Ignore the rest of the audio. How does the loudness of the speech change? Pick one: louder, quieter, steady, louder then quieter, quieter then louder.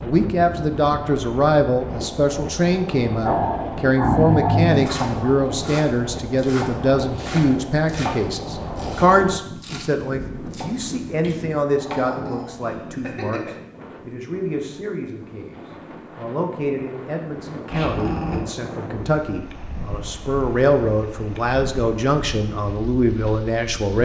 quieter then louder.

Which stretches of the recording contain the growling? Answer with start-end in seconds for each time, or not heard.
3.2-5.3, 11.8-13.5, 17.7-18.4.